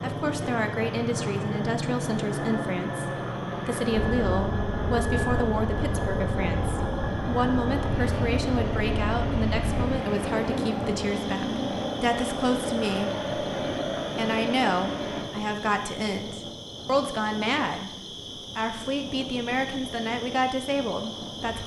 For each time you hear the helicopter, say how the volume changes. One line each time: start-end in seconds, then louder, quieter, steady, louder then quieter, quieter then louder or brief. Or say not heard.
0.0-15.2 steady.